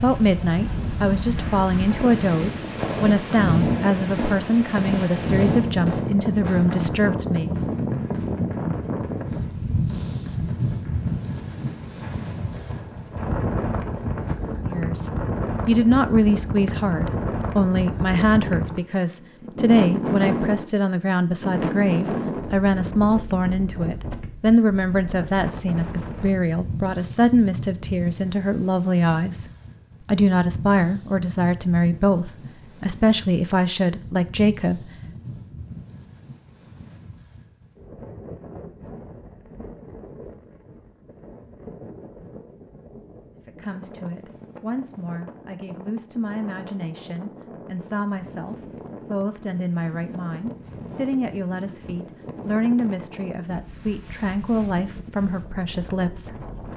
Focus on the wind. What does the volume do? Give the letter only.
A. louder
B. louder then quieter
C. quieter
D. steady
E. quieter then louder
C.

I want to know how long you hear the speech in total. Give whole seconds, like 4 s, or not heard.
41 s.